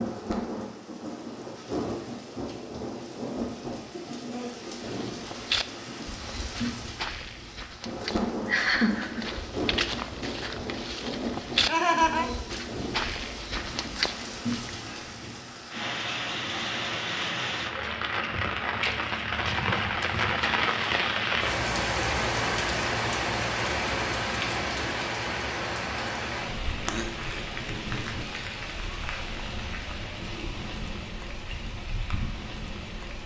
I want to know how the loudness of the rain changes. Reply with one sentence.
The loudness of the rain goes up, then down.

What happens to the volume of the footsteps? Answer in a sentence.
The volume of the footsteps goes down, then up.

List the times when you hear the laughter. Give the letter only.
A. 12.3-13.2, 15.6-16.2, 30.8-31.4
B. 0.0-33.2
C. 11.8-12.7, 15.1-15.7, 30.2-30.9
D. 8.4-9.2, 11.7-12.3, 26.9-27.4
D.